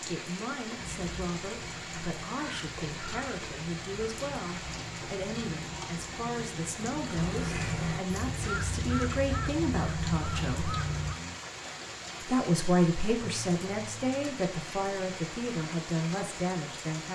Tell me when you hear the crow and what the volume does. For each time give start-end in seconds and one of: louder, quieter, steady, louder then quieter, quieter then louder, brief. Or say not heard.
0.8-11.2 louder.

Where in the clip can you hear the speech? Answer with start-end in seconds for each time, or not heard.
0.0-10.7, 12.2-17.0.